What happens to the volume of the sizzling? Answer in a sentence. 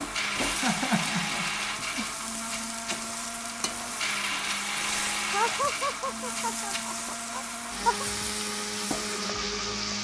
The volume of the sizzling stays about the same.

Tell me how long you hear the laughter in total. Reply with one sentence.
You can hear the laughter for 4 seconds altogether.